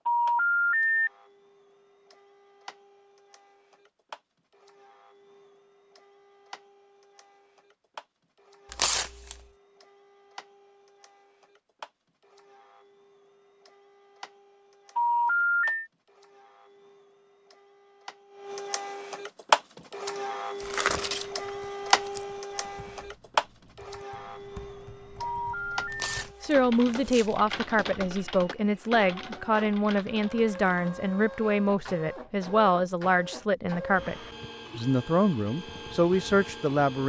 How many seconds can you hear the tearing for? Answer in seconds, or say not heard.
4 s.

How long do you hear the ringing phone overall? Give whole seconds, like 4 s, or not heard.
3 s.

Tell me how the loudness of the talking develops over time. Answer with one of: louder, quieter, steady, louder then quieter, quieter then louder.
steady.